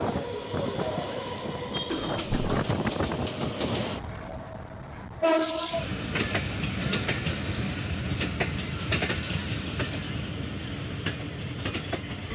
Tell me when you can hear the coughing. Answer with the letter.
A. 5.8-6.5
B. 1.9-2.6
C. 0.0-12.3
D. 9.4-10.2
B.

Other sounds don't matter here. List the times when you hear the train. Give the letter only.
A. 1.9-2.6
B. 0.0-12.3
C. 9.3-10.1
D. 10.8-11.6
B.